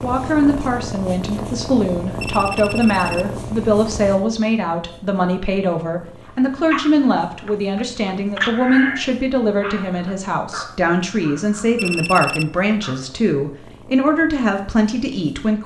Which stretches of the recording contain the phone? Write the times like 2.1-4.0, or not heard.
2.2-3.4, 11.8-12.4.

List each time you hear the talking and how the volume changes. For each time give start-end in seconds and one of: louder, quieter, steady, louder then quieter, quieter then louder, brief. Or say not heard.
0.0-15.6 steady.